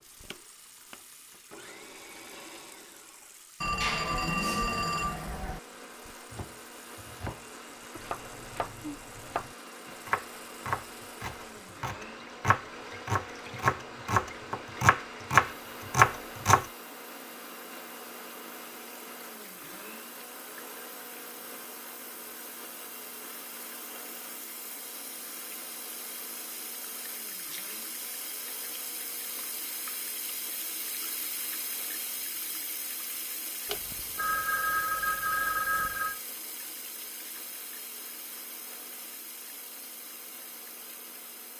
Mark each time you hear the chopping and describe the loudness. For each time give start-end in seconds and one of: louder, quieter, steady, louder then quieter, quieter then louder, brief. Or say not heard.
6.3-16.6 louder.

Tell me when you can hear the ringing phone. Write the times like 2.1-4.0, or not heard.
3.6-5.6, 33.6-36.2.